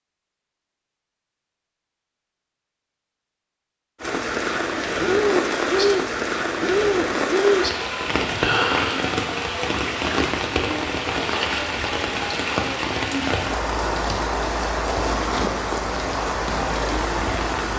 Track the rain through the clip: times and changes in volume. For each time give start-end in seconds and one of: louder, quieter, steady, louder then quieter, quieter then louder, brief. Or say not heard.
4.0-17.7 steady.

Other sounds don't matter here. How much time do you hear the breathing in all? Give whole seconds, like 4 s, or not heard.
4 s.